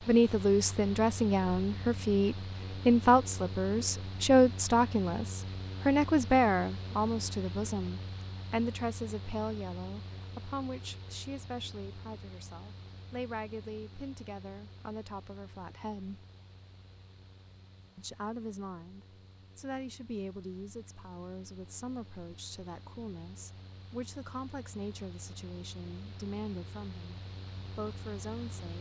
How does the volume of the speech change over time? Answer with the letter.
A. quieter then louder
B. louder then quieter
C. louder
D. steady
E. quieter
E.